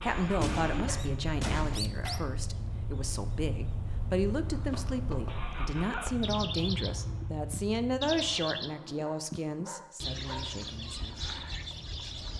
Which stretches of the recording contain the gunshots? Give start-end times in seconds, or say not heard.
0.1-1.8.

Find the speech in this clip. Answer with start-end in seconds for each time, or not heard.
0.0-11.3.